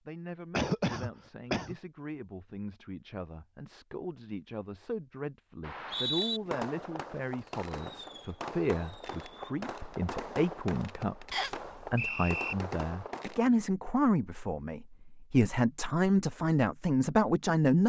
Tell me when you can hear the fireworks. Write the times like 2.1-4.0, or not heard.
6.2-13.5.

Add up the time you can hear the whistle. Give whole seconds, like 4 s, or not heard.
2 s.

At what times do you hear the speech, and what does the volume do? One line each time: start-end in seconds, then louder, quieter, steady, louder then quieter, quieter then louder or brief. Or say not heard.
0.1-17.8 louder.